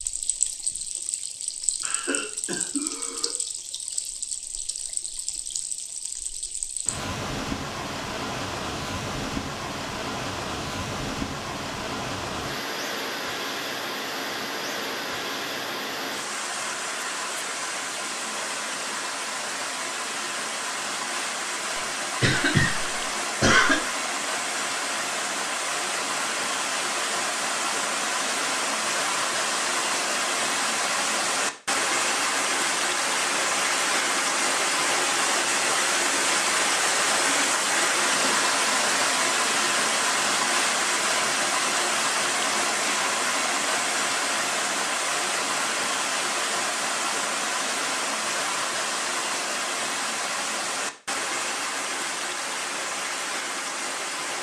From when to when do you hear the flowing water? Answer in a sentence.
The flowing water can be heard from 0.0 to 54.3 s.